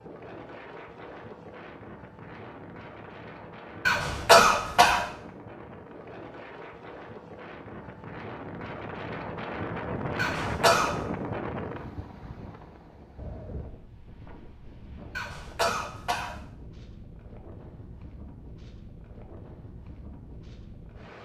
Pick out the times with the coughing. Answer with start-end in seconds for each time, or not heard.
3.9-5.0, 10.2-10.9, 15.2-16.4.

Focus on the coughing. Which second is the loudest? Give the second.
4 s.